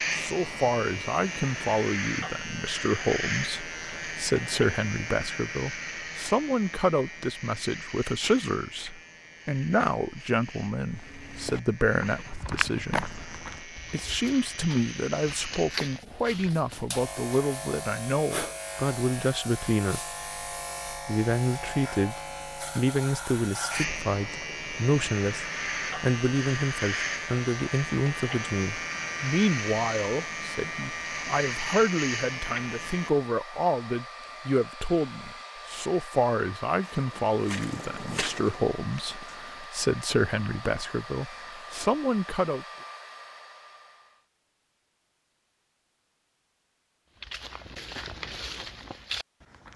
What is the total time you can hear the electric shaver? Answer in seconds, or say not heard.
33 s.